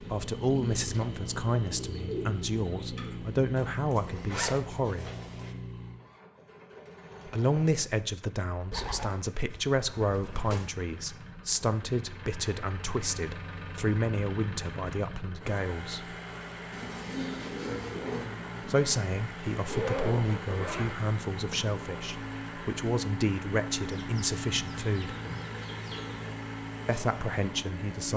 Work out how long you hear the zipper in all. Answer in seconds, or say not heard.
3 s.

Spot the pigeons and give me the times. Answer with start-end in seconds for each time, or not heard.
0.5-3.1, 8.7-10.8, 16.7-18.3, 23.9-26.3.